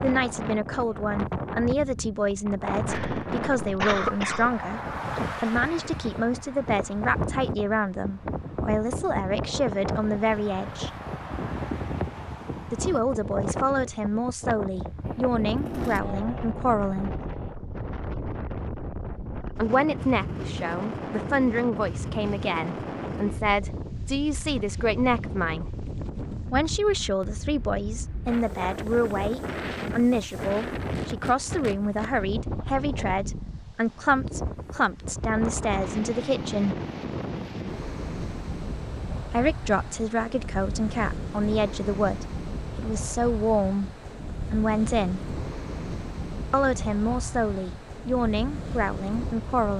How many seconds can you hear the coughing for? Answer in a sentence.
The coughing can be heard for 2 seconds in total.